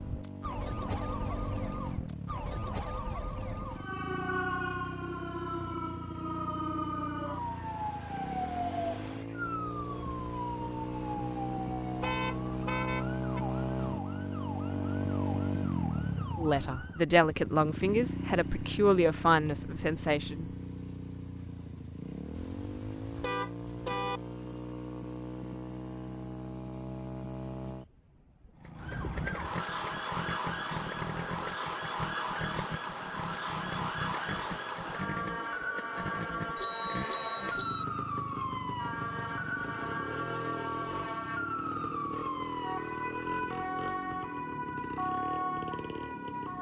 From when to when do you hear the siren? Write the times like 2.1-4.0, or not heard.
0.0-17.1, 28.8-46.5.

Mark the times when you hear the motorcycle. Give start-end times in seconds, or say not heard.
0.0-46.5.